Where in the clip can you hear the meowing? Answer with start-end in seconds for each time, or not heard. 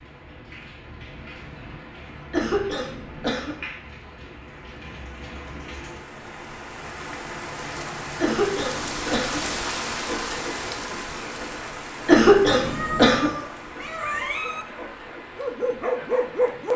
12.6-14.7.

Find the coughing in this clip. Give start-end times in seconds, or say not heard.
2.3-3.5, 8.2-9.4, 12.1-13.3.